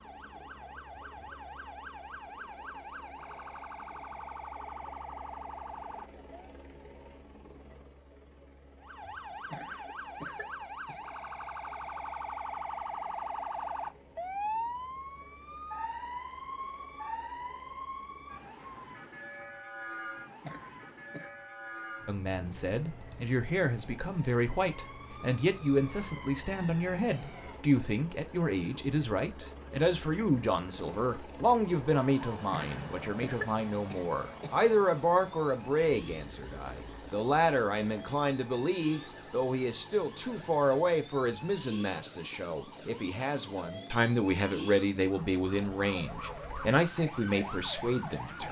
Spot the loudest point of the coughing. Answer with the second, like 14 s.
33 s.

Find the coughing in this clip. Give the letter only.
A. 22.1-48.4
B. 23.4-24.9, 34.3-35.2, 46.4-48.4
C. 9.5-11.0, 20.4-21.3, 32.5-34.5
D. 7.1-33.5
C.